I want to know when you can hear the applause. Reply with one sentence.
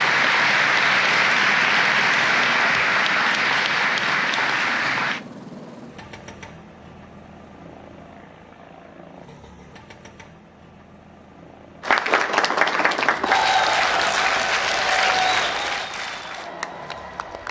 You can hear the applause from 0.0 to 5.2 s and from 11.8 to 17.4 s.